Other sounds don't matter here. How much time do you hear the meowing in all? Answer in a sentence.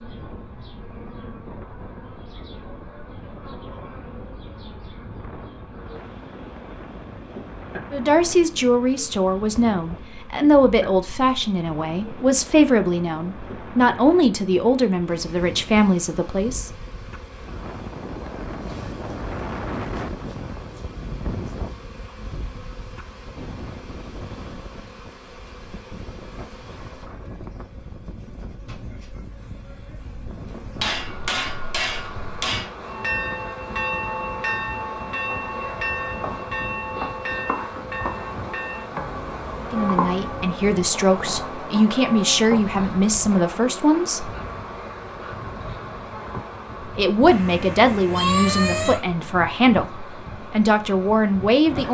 The meowing can be heard for 2 seconds in total.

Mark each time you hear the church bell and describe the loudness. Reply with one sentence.
You can hear the church bell from 32.9 to 42.6 s, getting quieter.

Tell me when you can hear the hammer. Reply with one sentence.
You can hear the hammer from 30.8 to 32.7 s.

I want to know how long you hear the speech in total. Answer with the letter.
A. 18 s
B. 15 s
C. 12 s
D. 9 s
A.